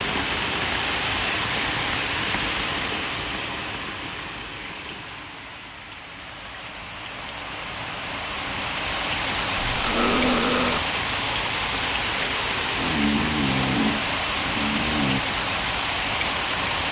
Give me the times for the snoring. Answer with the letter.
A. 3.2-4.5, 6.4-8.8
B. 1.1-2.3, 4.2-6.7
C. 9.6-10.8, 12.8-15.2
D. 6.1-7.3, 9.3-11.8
C.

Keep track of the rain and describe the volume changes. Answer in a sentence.
The volume of the rain goes down, then up.